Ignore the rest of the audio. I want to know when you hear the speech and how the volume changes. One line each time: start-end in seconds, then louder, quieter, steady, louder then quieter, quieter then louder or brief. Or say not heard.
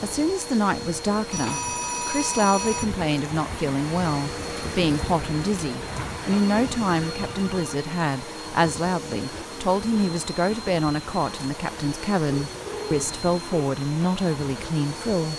0.0-15.3 steady.